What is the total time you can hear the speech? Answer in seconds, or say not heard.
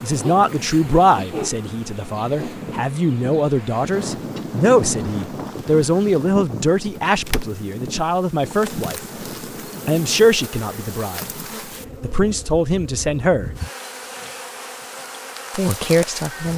13 s.